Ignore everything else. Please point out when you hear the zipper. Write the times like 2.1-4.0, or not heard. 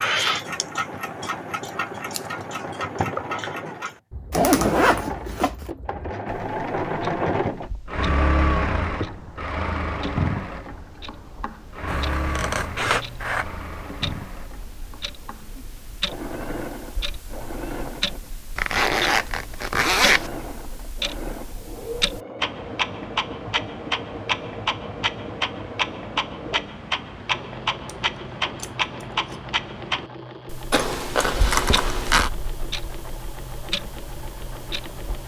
4.3-5.7, 18.6-20.3, 30.7-32.3.